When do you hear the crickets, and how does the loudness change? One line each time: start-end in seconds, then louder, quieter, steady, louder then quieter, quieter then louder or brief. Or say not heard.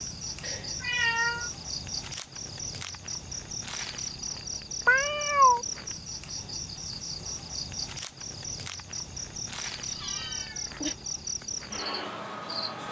0.0-12.8 steady.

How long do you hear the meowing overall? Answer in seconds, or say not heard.
3 s.